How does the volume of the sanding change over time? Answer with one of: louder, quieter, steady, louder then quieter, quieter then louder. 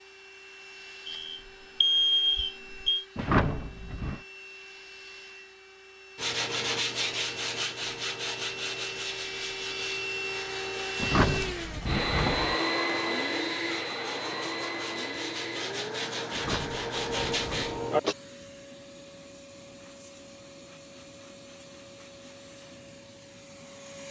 quieter then louder.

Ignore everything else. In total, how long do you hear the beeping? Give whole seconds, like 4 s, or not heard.
2 s.